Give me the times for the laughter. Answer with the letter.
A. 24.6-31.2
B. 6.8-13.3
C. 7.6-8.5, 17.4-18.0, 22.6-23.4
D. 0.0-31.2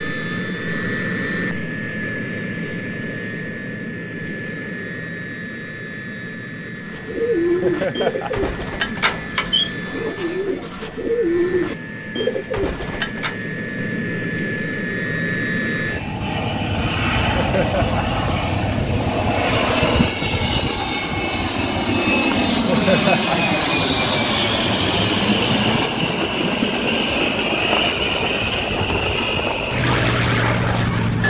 C.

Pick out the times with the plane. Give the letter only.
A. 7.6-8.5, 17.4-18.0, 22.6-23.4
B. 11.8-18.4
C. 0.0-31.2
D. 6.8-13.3
C.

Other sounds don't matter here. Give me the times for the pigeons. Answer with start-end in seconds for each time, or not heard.
6.8-13.3.